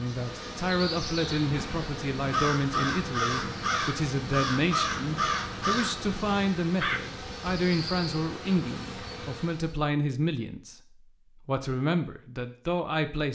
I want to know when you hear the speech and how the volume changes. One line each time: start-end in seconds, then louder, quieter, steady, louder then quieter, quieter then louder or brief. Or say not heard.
0.0-13.3 steady.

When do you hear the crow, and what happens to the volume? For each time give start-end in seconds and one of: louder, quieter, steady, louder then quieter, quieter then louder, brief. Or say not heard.
1.3-7.0 steady.